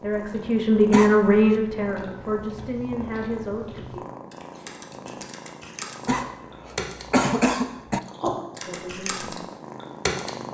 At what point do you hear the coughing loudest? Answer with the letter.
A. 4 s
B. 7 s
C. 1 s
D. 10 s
B.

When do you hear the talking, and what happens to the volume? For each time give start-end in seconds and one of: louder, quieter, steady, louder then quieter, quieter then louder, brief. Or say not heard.
0.0-4.0 quieter
8.7-9.3 brief.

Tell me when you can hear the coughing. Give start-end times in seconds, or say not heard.
0.9-1.6, 6.0-8.0.